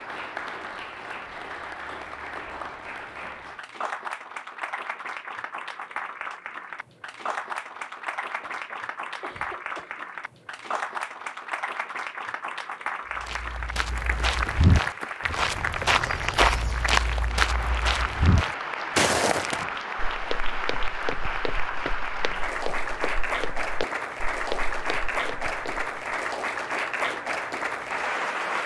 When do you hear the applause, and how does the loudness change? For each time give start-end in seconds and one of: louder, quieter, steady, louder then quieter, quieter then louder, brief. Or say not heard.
0.0-28.6 louder.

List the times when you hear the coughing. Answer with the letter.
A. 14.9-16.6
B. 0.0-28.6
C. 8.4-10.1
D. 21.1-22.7
C.